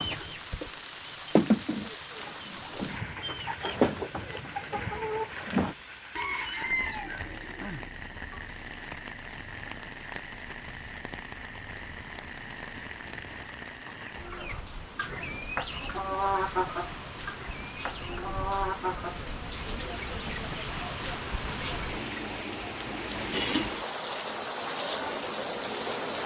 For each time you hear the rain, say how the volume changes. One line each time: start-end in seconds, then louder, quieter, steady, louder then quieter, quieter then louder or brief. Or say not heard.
0.0-26.2 louder.